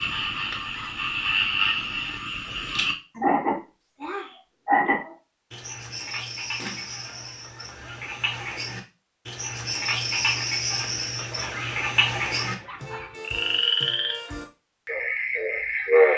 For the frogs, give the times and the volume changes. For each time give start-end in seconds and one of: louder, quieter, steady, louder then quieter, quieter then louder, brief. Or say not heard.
0.0-16.1 quieter then louder.